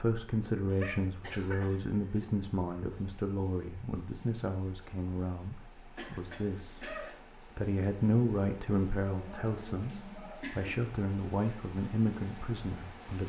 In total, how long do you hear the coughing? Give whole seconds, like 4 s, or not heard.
5 s.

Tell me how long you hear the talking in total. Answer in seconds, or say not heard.
13 s.